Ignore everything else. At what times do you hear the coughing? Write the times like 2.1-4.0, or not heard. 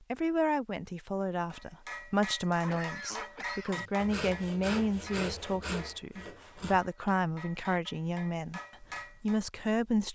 2.5-4.0.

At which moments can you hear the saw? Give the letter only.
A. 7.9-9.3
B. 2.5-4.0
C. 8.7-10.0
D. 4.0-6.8
D.